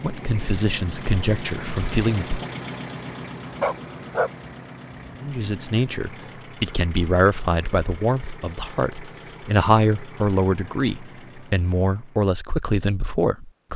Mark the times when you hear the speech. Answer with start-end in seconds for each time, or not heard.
0.0-2.4, 5.2-13.7.